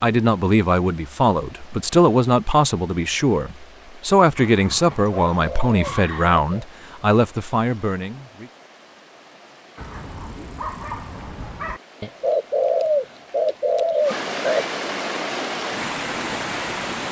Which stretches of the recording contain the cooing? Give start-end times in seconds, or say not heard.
4.9-6.7, 12.0-14.8.